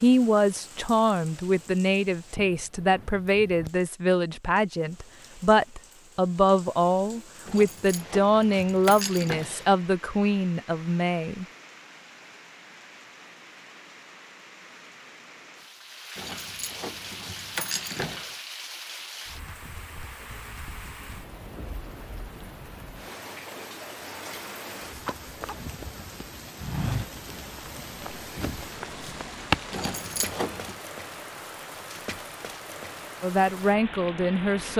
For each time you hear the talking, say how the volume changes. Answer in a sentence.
The talking can be heard from 0.0 to 11.4 s, at a steady volume; and briefly from 33.2 to 34.7 s.